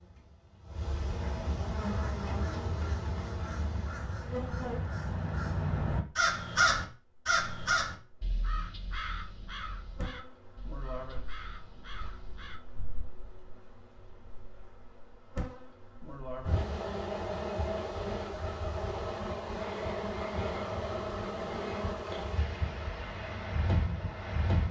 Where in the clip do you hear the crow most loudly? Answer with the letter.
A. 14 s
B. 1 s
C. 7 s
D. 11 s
C.